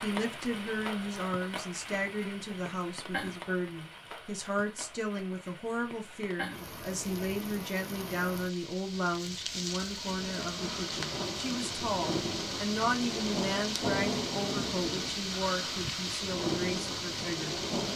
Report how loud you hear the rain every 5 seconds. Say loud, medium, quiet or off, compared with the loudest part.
medium, medium, loud, loud.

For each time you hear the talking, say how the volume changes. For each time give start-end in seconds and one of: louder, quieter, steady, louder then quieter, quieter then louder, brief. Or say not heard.
0.0-17.6 steady.